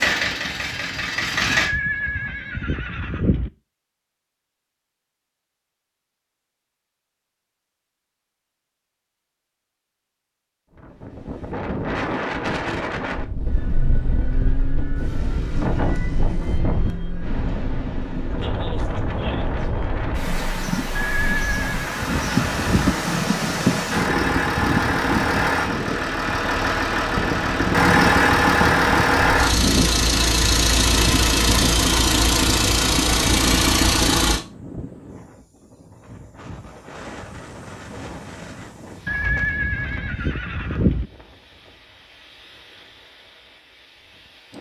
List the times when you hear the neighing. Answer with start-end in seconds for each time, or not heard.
1.5-3.5, 20.9-22.9, 39.0-41.1.